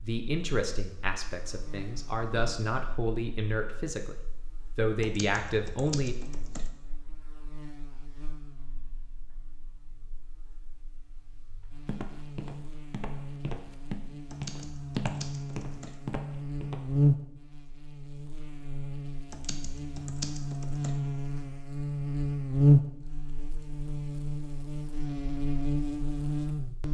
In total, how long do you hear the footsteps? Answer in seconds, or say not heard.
5 s.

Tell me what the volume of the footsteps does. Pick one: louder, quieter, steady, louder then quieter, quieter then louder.
louder then quieter.